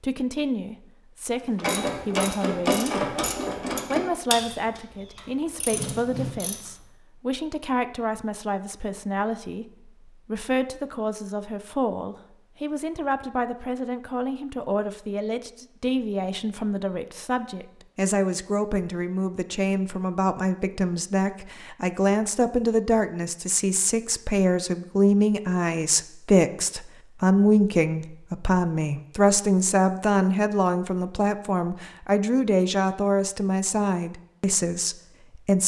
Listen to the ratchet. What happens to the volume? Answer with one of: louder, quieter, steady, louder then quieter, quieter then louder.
quieter then louder.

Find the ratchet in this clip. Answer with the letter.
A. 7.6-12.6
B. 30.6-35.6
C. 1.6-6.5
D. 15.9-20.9
C.